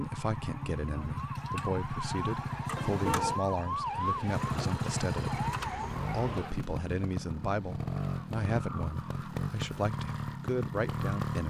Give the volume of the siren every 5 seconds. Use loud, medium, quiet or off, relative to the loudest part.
loud, loud, off.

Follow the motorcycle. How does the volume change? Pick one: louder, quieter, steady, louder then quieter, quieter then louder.
steady.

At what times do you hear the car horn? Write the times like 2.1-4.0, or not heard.
2.8-3.4.